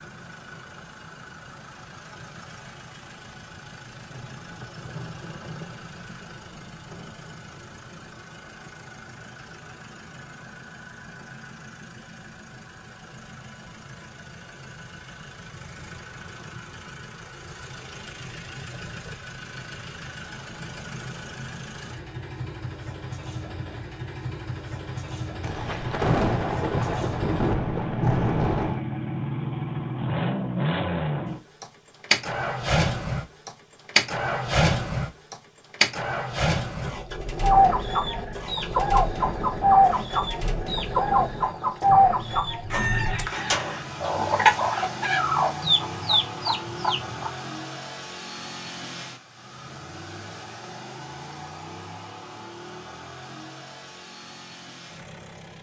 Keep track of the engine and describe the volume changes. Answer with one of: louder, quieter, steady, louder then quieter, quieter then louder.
louder then quieter.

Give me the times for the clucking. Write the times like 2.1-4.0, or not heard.
37.4-47.3.